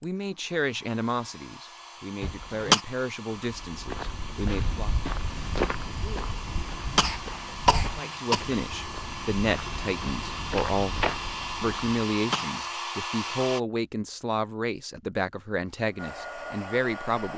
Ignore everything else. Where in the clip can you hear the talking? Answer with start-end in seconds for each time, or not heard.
0.0-4.9, 8.0-17.3.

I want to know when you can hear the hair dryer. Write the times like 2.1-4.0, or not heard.
0.0-13.6, 15.7-17.3.